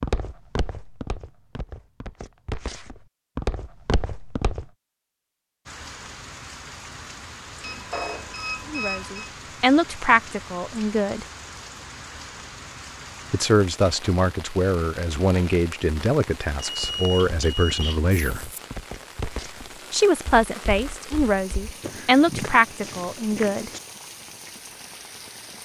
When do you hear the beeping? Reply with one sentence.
You can hear the beeping from 7.6 to 9.3 s and from 16.8 to 18.0 s.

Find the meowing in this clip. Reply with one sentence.
You can't hear the meowing here.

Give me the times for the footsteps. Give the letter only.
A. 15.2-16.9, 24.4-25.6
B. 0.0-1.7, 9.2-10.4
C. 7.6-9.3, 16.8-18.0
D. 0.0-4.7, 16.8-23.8
D.